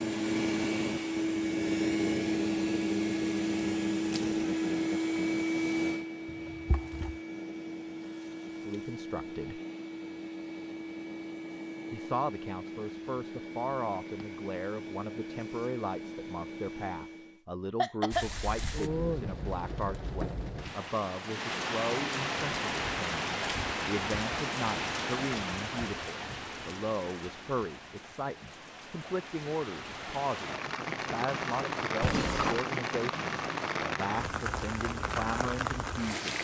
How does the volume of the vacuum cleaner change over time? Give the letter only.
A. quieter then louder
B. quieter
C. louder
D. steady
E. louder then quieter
B.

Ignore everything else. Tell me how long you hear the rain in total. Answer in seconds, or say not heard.
18 s.